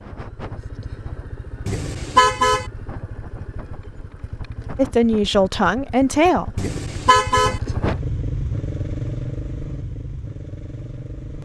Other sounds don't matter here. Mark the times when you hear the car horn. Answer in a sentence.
The car horn can be heard from 1.6 to 2.6 s and from 6.5 to 7.6 s.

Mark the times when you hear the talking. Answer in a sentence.
The talking can be heard from 4.8 to 6.7 s.